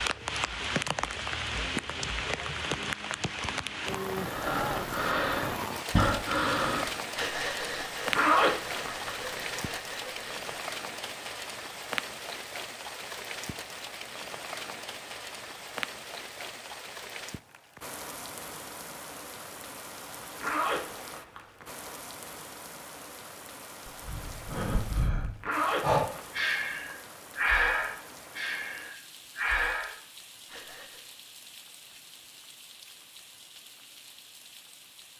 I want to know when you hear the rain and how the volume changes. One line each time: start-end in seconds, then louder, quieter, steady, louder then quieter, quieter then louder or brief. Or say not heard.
0.0-35.1 quieter.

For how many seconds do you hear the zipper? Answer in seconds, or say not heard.
4 s.